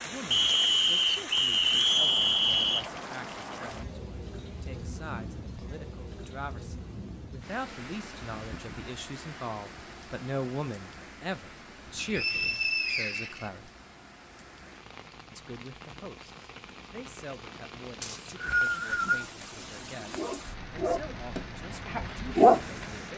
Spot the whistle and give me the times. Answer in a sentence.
You can hear the whistle from 0.3 to 2.8 s, from 11.9 to 13.5 s and from 18.0 to 19.2 s.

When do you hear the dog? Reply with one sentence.
You can hear the dog from 19.6 to 23.1 s.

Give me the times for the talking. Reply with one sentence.
You can hear the talking from 0.0 to 13.7 s and from 15.3 to 23.1 s.